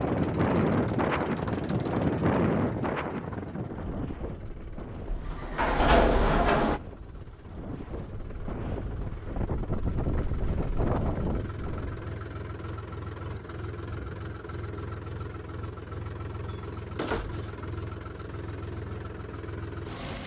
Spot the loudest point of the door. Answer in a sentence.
The volume of the door peaks at 6 seconds.